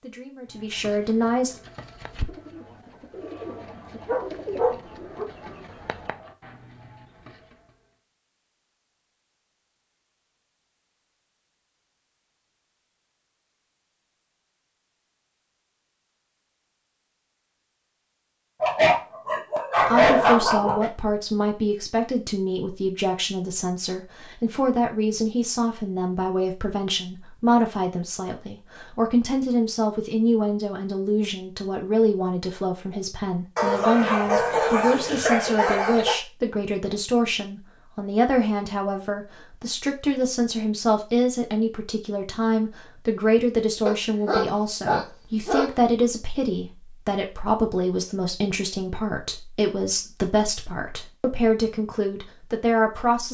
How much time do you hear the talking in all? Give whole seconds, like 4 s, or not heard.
35 s.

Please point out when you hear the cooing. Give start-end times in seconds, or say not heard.
0.5-7.8.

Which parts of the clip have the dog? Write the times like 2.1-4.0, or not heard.
4.0-5.2, 18.6-20.9, 33.5-36.2, 43.9-45.8.